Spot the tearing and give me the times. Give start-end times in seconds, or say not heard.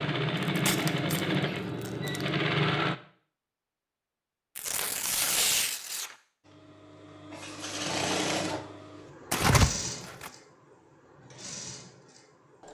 0.3-2.2, 4.5-6.2, 9.3-10.3.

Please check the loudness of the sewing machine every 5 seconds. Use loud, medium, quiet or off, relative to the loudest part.
loud, medium, quiet.